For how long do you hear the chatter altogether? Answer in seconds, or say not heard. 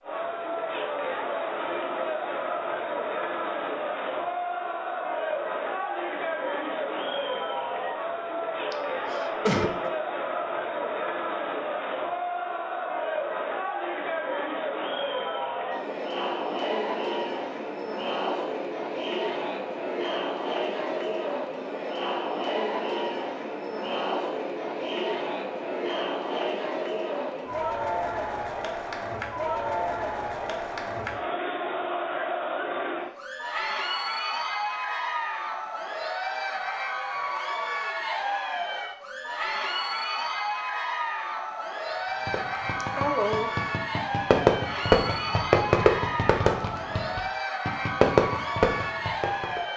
50 s.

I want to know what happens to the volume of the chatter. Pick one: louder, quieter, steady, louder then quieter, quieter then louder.
steady.